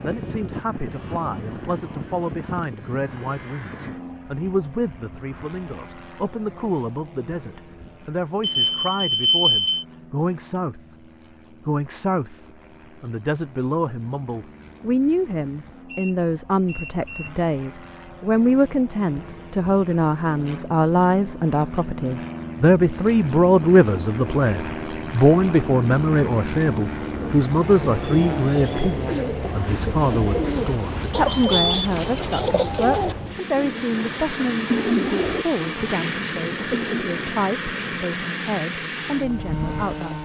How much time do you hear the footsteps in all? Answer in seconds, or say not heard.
not heard.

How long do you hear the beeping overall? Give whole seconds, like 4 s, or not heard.
4 s.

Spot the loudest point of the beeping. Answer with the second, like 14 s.
9 s.